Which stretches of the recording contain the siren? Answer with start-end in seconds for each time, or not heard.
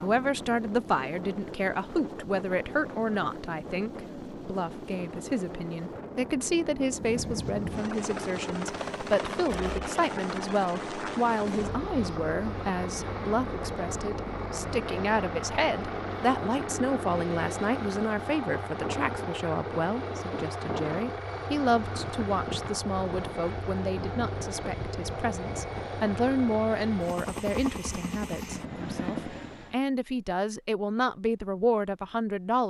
not heard.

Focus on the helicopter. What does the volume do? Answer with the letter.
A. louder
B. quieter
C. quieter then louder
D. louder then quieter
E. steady
A.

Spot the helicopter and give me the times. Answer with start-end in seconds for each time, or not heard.
0.0-29.8.